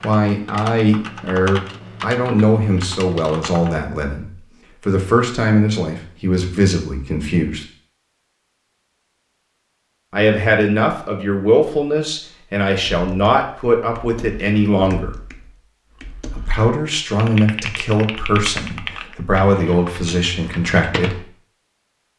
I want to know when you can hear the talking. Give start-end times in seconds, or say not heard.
0.0-7.7, 10.1-15.1, 16.2-21.2.